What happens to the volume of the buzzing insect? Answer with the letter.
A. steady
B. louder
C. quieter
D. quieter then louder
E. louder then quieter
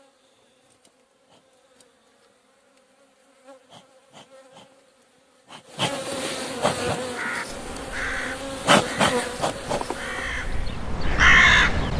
B.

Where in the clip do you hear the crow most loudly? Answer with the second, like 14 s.
11 s.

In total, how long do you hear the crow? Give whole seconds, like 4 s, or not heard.
5 s.